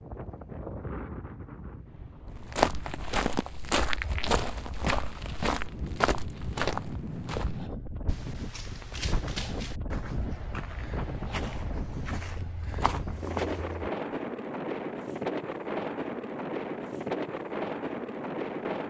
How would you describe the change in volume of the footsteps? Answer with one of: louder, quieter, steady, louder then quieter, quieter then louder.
quieter.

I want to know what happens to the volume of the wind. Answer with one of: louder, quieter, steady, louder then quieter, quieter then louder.
louder.